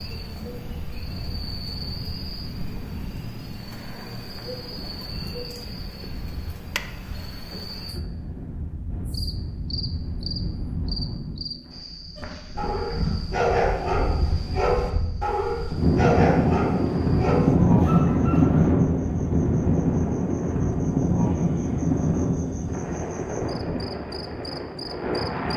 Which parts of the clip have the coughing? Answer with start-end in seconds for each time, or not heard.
7.5-8.3.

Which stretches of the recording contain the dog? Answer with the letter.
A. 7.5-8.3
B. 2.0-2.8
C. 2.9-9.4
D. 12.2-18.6
D.